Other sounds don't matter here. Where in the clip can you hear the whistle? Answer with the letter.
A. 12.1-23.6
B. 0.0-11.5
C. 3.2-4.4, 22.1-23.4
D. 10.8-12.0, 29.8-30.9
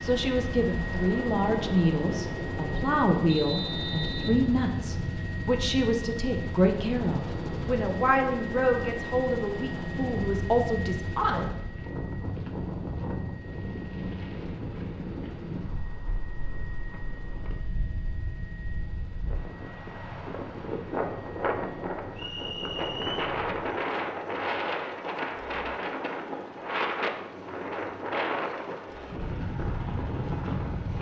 C.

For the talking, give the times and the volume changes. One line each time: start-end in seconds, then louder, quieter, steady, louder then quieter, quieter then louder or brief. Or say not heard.
0.0-11.5 steady.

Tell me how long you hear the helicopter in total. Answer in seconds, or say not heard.
31 s.